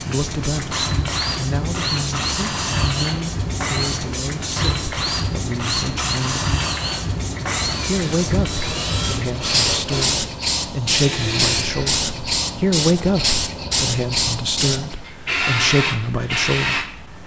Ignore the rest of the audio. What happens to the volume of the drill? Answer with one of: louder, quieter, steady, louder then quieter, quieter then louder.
steady.